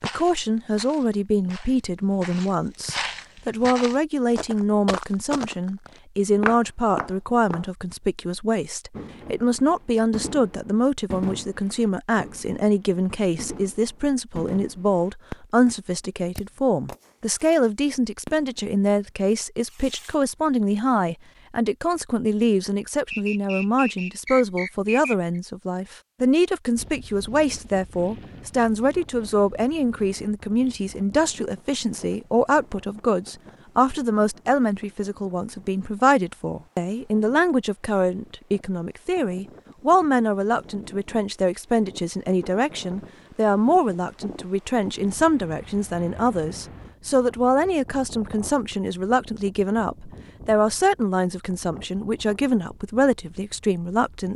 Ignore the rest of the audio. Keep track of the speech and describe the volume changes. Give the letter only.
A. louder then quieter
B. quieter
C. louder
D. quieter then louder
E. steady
E.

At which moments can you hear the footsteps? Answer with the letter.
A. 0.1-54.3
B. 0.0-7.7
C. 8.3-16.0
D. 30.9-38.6
B.